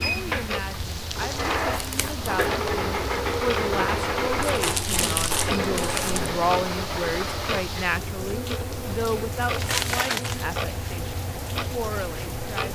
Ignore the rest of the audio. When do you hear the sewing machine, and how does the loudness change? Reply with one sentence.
The sewing machine can be heard from 0.0 to 12.7 s, getting quieter.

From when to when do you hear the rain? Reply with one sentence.
The rain can be heard from 0.0 to 12.7 s.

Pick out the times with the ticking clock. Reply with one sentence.
The ticking clock can be heard from 0.0 to 12.7 s.